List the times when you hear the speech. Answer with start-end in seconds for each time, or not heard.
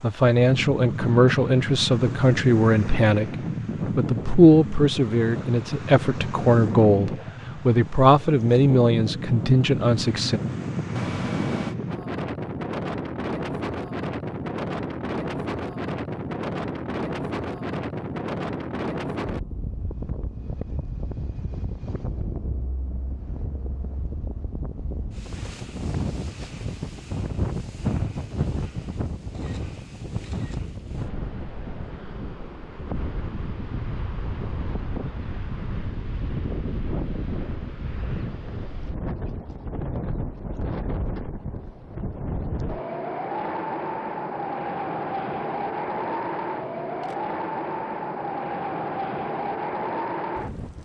0.0-10.4.